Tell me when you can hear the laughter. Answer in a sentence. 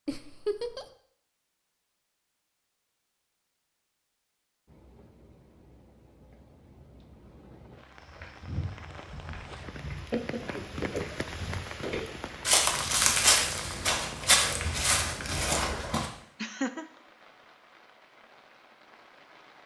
The laughter can be heard from 0.1 to 0.8 s, from 10.1 to 11.2 s and from 16.4 to 16.9 s.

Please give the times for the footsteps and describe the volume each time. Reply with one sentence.
The footsteps can be heard from 8.0 to 16.1 s, getting louder.